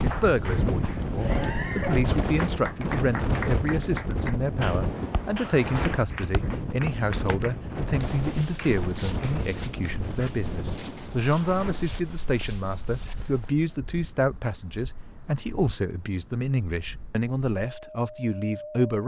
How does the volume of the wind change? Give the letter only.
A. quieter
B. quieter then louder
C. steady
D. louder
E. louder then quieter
A.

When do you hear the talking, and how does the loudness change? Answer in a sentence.
The talking can be heard from 0.0 to 19.0 s, at a steady volume.